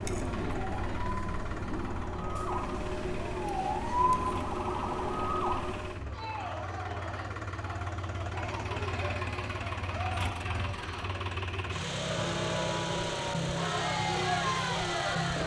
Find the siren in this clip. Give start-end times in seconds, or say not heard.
0.0-6.2.